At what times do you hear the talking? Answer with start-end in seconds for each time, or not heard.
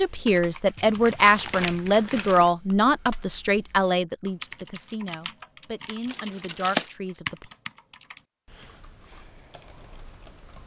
0.0-7.5.